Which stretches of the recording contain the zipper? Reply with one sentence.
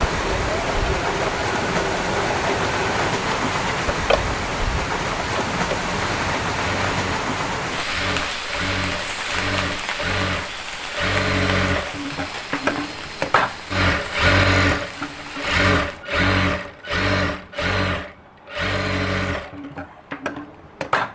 You can't hear the zipper here.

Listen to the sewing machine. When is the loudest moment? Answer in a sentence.
The volume of the sewing machine peaks at 14 seconds.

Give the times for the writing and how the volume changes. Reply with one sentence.
You can't hear the writing here.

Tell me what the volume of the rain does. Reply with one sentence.
The loudness of the rain goes down.